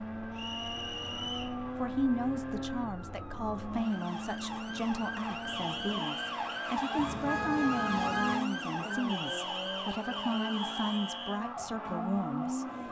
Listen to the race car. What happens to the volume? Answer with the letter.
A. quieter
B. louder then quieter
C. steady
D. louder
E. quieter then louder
C.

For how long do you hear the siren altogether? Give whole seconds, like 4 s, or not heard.
13 s.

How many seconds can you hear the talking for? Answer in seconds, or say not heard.
11 s.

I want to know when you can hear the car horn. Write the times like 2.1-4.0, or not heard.
7.0-8.4.